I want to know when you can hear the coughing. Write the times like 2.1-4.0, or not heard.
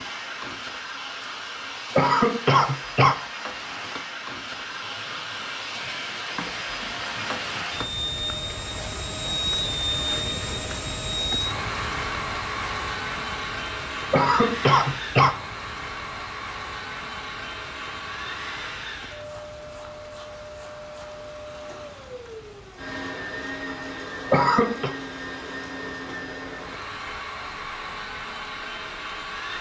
1.9-3.1, 14.1-15.3, 24.3-24.9.